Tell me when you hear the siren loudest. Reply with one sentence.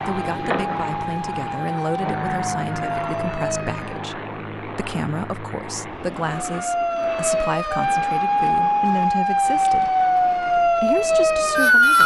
The loudest moment of the siren is at 12 seconds.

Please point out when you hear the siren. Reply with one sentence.
The siren can be heard from 0.0 to 4.0 s and from 6.5 to 12.0 s.